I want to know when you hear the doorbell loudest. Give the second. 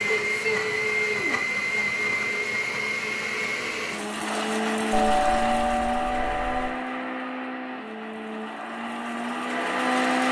5 s.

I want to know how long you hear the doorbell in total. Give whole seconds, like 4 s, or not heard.
2 s.